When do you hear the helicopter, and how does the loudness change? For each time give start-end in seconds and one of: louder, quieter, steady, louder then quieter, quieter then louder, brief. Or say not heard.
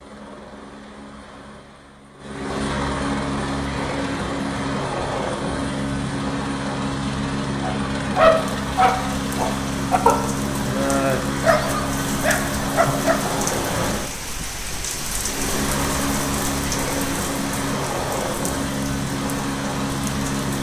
0.0-20.5 steady.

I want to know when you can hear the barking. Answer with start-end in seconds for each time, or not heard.
7.6-13.2.